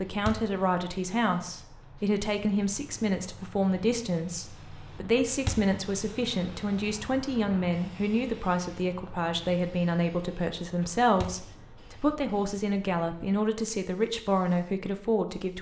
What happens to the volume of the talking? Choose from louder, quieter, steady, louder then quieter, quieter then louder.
steady.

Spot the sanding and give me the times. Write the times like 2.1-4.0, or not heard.
not heard.